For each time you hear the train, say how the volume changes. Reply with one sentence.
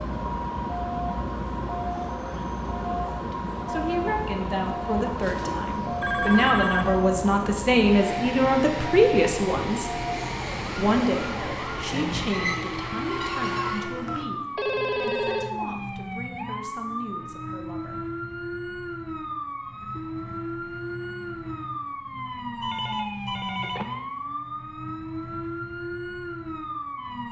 The train can be heard from 0.0 to 14.2 s, at a steady volume.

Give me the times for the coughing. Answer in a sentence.
The coughing can't be heard in this clip.